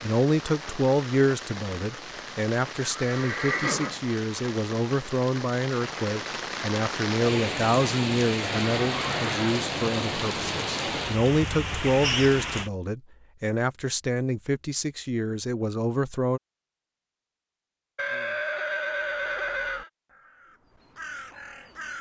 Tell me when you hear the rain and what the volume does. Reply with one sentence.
You can hear the rain from 0.0 to 12.7 s, getting louder.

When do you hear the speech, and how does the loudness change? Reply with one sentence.
The speech can be heard from 0.0 to 16.4 s, at a steady volume.